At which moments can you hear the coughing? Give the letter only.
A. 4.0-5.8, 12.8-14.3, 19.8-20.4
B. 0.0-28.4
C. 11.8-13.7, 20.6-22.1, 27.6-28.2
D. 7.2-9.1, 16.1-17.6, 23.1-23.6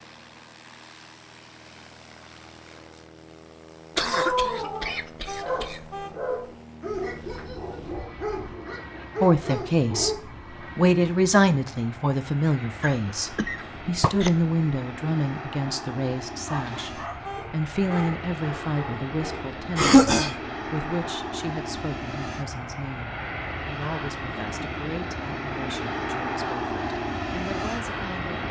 A.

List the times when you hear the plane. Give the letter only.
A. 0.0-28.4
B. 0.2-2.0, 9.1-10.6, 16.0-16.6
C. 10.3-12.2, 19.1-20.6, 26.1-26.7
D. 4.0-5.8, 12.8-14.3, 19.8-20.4
A.